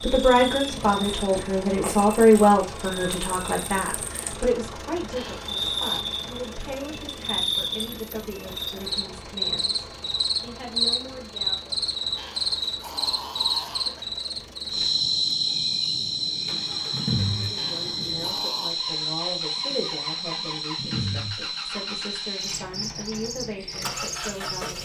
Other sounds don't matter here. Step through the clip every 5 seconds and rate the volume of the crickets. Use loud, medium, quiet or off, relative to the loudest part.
medium, loud, loud, loud, medium.